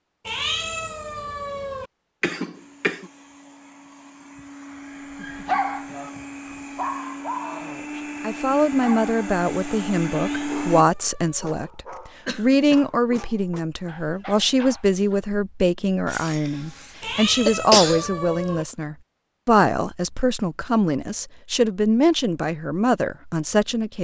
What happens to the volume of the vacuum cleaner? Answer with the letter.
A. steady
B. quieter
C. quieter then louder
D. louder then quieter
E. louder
E.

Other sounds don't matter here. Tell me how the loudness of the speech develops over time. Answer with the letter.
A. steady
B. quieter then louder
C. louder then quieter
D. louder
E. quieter
A.